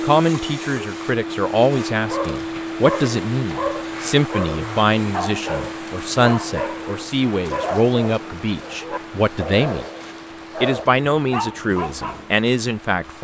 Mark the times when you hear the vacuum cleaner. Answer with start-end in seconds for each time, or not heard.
0.0-13.1.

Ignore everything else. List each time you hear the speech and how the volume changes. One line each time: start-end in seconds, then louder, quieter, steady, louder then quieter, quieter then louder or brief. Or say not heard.
0.0-9.8 steady
10.6-13.1 brief.